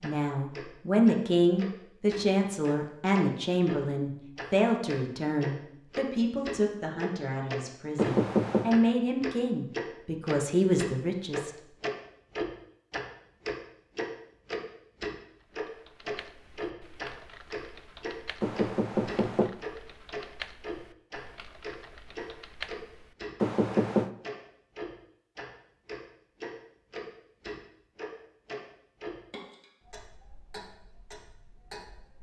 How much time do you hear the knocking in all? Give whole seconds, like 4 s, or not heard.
3 s.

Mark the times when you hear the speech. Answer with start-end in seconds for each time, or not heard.
0.0-11.5.